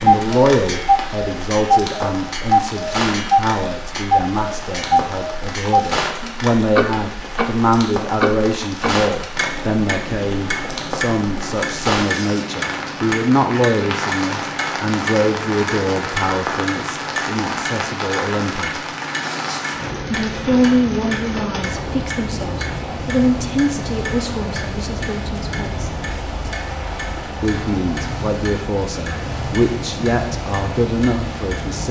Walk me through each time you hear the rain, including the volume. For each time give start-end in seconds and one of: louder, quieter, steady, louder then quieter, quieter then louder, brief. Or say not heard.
0.0-31.8 steady.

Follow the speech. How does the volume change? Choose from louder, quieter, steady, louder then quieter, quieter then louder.
steady.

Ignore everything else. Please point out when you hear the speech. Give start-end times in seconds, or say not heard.
0.0-18.9, 20.0-25.9, 27.4-31.8.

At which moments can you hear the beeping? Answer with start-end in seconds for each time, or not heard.
not heard.